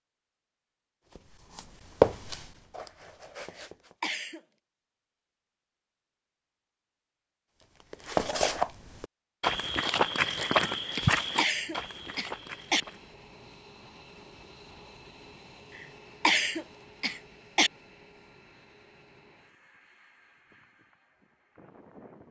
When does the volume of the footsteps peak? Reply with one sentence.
The volume of the footsteps peaks at 2 seconds.